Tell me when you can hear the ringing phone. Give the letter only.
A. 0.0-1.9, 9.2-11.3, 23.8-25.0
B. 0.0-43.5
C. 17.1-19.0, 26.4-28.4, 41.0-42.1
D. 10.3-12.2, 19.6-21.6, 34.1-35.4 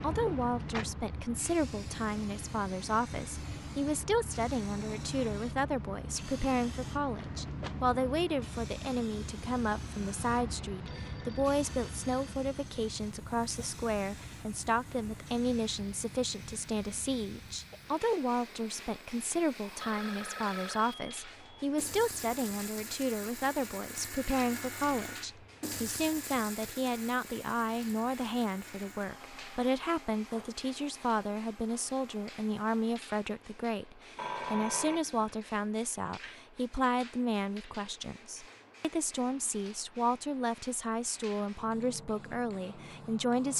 D.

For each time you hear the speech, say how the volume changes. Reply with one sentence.
The speech can be heard from 0.0 to 43.5 s, at a steady volume.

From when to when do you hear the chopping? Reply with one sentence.
You can't hear the chopping here.